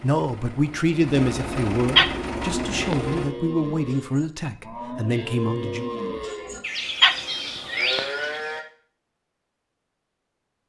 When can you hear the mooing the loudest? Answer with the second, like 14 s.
8 s.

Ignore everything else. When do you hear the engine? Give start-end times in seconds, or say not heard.
0.0-3.4.